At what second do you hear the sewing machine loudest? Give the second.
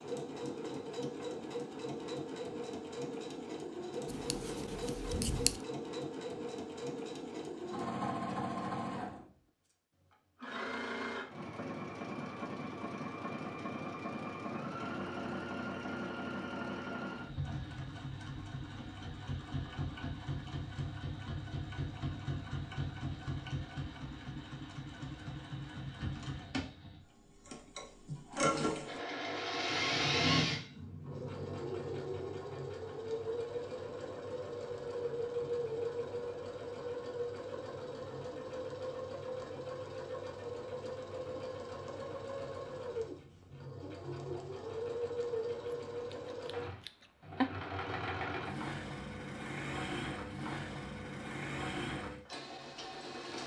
30 s.